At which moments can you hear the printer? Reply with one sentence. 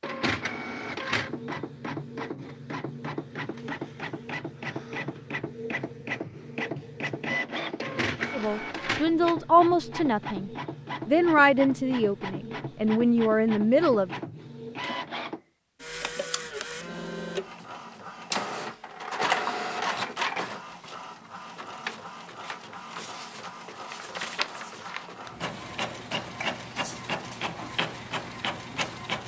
The printer can be heard from 0.0 to 29.2 s.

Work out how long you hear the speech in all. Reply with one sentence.
You can hear the speech for 6 seconds altogether.